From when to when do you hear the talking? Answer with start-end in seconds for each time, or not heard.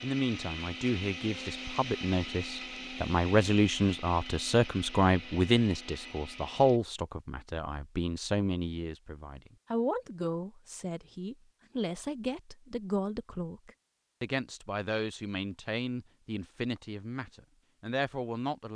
0.0-18.7.